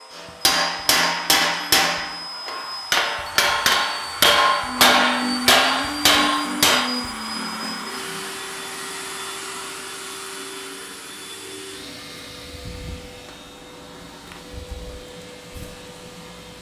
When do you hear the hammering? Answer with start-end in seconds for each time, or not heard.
0.1-6.8.